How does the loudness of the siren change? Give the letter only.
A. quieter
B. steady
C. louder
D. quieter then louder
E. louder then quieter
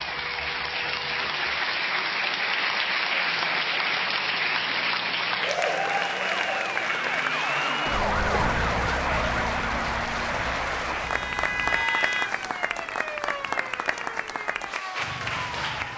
E.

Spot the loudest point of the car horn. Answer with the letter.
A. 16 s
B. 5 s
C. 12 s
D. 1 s
C.